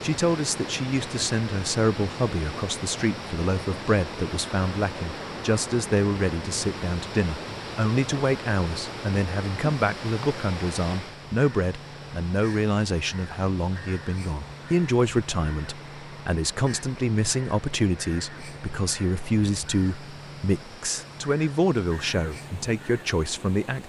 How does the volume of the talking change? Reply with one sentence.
The loudness of the talking stays about the same.